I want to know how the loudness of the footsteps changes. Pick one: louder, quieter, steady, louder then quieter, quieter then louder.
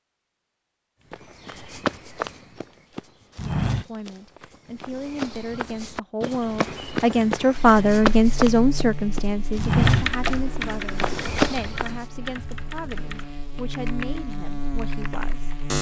louder.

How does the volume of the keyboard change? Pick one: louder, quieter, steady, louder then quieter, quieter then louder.
quieter.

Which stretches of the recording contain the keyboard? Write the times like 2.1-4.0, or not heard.
9.7-15.7.